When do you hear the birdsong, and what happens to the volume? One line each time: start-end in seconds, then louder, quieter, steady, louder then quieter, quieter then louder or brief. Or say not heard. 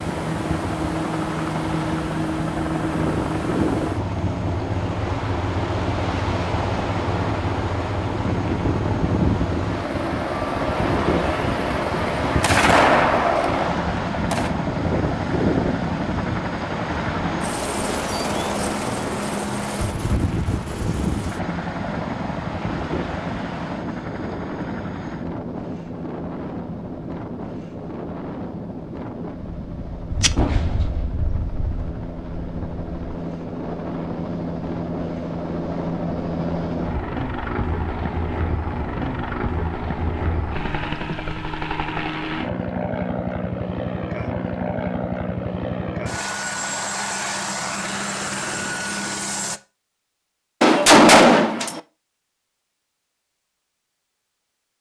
not heard.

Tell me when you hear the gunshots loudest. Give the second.
51 s.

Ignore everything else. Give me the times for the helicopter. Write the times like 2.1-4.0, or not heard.
0.0-49.6.